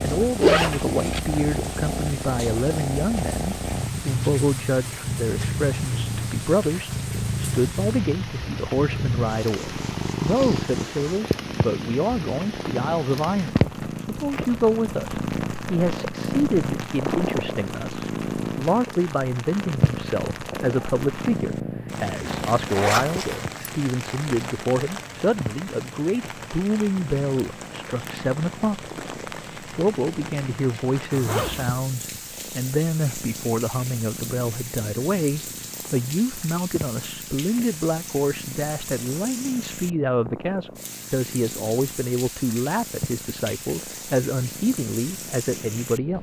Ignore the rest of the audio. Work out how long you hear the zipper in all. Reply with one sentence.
You can hear the zipper for 3 seconds altogether.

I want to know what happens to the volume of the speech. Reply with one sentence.
The volume of the speech stays about the same.